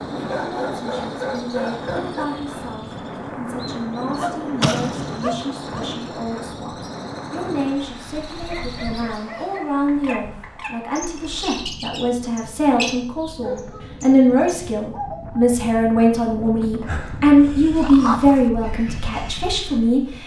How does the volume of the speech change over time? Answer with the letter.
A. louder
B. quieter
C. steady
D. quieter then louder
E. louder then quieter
A.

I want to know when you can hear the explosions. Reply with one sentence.
You can hear the explosions from 4.6 to 5.5 s.